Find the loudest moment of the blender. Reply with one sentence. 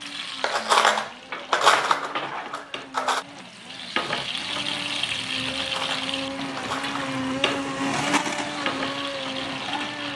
The volume of the blender peaks at 8 seconds.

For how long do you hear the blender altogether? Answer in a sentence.
The blender can be heard for 10 seconds in total.